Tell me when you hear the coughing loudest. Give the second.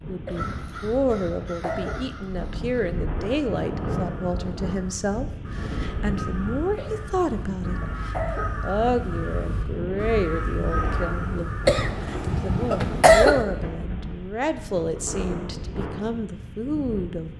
13 s.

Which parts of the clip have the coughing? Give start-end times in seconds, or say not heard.
0.2-2.0, 6.8-8.6, 11.7-13.4.